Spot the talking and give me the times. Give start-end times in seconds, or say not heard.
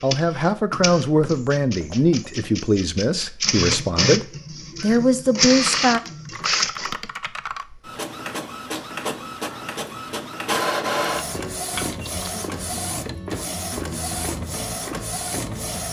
0.0-6.0.